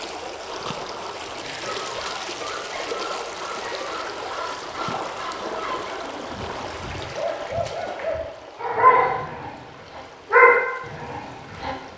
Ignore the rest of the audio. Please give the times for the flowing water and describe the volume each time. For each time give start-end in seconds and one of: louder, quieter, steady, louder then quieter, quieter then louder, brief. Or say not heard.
0.0-11.9 quieter.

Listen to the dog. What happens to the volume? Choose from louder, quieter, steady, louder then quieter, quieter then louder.
louder.